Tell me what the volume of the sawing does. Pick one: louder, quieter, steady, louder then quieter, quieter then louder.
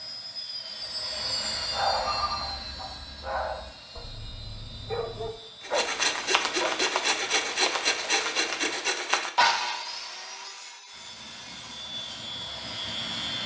quieter.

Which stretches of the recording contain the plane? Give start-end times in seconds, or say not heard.
0.0-8.8, 10.9-13.4.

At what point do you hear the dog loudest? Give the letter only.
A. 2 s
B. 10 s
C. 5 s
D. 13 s
A.